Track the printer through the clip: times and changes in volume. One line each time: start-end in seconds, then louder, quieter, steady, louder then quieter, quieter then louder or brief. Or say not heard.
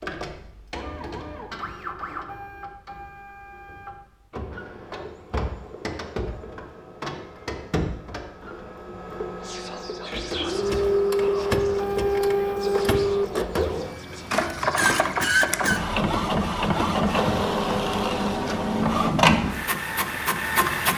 0.0-20.9 louder.